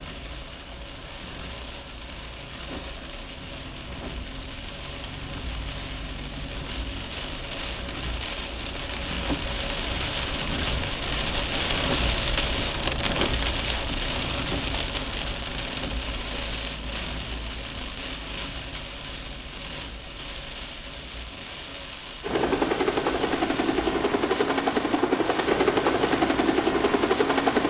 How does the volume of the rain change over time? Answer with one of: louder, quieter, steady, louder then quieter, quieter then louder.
louder then quieter.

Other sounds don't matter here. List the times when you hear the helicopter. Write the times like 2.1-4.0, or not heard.
22.2-27.6.